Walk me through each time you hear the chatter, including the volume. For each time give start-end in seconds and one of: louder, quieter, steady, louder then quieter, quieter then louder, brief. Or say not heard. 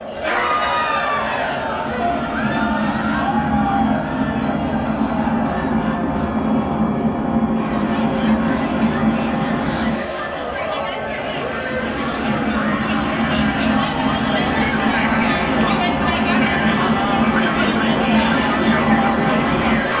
0.0-19.9 quieter then louder.